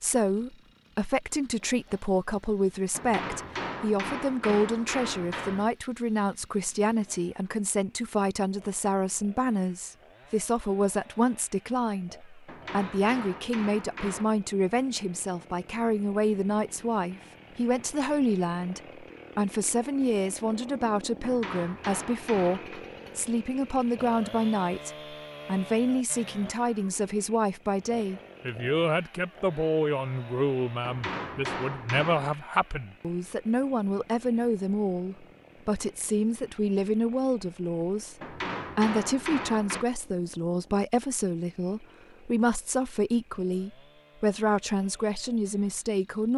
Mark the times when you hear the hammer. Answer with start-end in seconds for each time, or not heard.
2.9-5.7, 12.4-14.2, 21.2-22.9, 30.8-32.4, 38.2-39.9.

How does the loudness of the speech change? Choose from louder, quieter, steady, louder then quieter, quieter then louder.
steady.